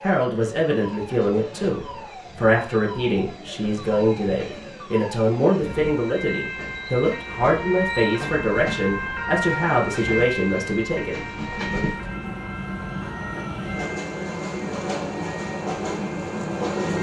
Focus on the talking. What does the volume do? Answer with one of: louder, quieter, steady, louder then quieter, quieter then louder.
steady.